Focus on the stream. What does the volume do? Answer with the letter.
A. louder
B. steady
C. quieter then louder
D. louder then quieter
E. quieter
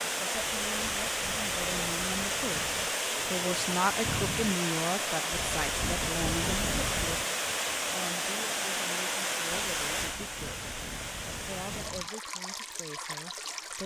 E.